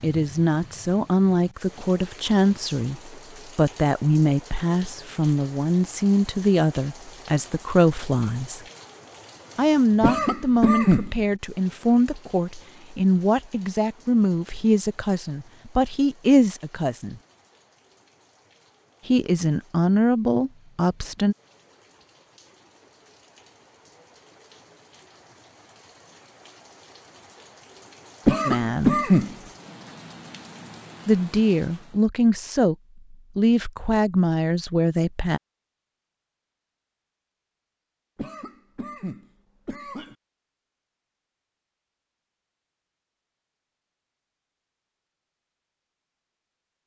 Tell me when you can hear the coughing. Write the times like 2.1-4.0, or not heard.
10.0-11.1, 28.2-29.4, 38.1-40.1.